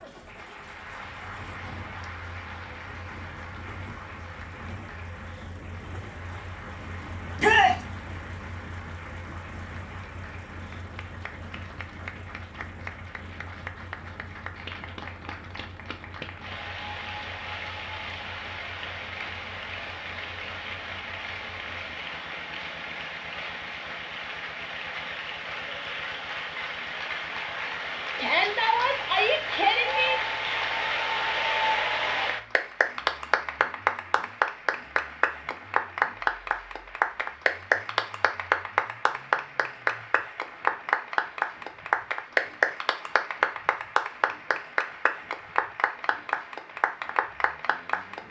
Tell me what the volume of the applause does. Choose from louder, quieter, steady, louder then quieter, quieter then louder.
louder.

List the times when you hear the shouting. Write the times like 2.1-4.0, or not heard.
7.3-7.8, 28.1-30.1.